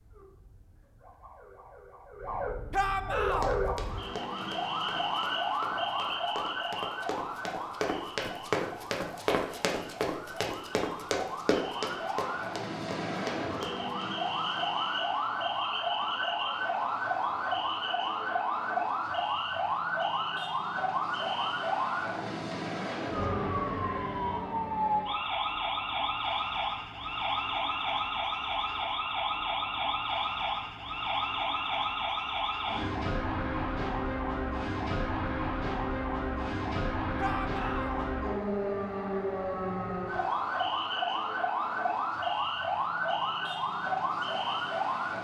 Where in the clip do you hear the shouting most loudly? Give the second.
3 s.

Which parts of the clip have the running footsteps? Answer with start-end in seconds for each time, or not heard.
3.3-13.9.